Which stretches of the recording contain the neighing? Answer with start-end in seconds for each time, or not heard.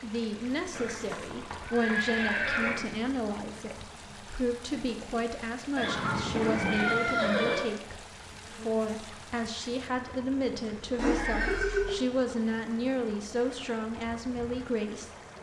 0.8-2.8, 5.8-7.7, 10.9-11.9.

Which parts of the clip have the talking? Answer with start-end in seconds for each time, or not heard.
0.0-15.1.